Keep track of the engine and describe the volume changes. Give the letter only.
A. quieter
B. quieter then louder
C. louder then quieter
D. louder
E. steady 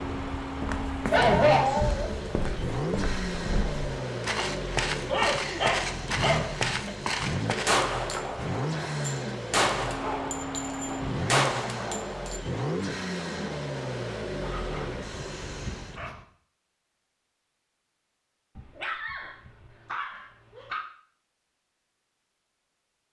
E.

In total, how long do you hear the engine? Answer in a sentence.
The engine can be heard for 16 seconds in total.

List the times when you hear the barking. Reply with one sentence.
The barking can be heard from 1.1 to 2.5 s, from 5.0 to 6.9 s, from 10.0 to 11.1 s, from 14.4 to 16.2 s and from 18.6 to 20.9 s.